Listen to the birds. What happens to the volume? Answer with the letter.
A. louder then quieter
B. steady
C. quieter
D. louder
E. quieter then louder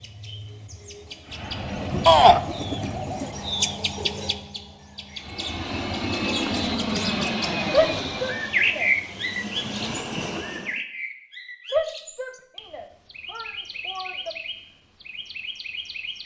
A.